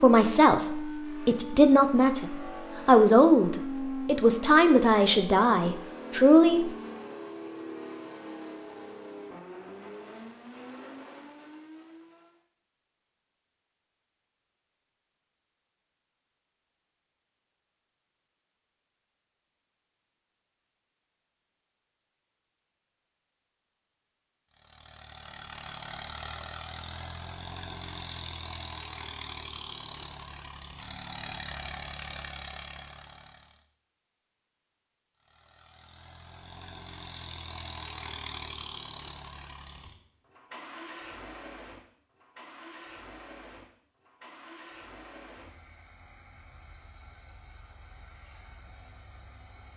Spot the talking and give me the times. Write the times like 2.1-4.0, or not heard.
0.0-6.7.